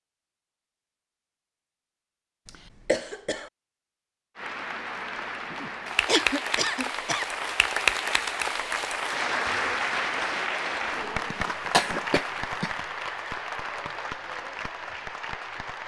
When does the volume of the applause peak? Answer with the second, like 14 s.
8 s.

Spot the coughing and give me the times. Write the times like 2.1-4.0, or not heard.
2.5-3.5, 5.5-7.2, 11.3-12.7.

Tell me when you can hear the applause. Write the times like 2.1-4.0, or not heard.
4.3-15.8.